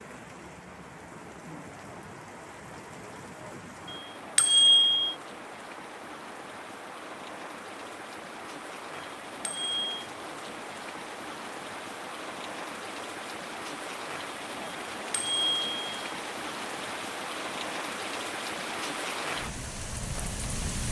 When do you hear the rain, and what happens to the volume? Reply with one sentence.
You can hear the rain from 0.0 to 20.8 s, getting louder.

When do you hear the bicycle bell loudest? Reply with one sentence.
The volume of the bicycle bell peaks at 5 seconds.